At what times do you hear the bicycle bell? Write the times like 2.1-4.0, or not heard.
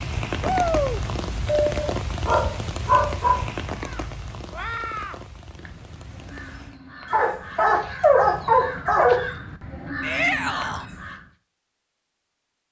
not heard.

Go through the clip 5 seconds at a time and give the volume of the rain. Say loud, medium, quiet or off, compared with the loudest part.
loud, quiet, off.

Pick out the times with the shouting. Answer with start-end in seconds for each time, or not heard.
0.4-1.0, 10.0-10.8.